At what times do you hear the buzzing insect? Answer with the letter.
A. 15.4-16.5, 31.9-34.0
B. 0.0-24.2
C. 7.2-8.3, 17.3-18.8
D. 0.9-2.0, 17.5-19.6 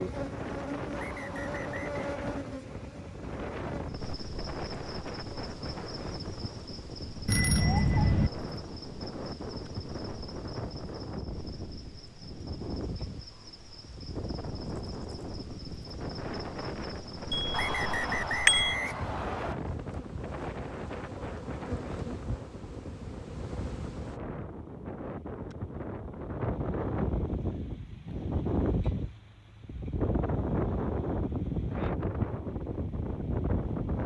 B.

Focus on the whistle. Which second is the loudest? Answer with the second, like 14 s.
18 s.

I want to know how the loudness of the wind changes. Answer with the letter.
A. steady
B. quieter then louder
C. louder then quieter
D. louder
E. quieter
D.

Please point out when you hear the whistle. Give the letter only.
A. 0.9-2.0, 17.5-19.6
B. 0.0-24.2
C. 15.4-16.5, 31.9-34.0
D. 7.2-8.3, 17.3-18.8
A.